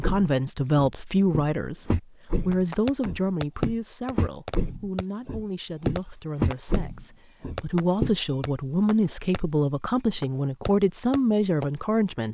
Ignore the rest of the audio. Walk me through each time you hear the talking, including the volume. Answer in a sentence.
The talking can be heard from 0.0 to 12.2 s, getting quieter then louder.